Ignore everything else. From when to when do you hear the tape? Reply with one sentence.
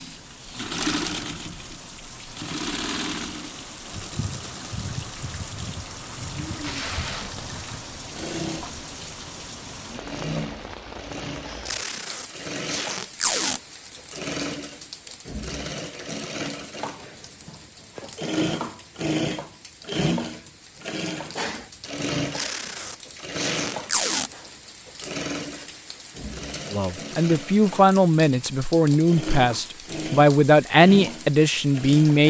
You can hear the tape from 6.6 to 7.6 s, from 11.7 to 13.6 s and from 22.4 to 24.3 s.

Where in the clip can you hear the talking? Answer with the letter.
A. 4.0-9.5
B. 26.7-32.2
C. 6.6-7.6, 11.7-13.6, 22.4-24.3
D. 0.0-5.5
B.